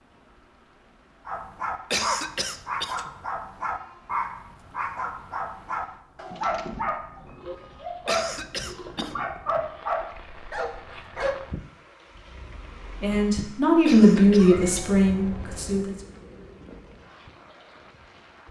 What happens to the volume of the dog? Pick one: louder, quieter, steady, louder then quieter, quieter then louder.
steady.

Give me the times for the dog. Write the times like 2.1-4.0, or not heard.
1.2-11.4.